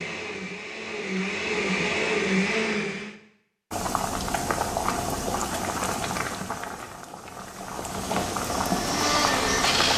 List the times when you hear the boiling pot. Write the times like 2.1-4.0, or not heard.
3.7-9.9.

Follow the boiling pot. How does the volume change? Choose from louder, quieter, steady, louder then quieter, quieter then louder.
quieter then louder.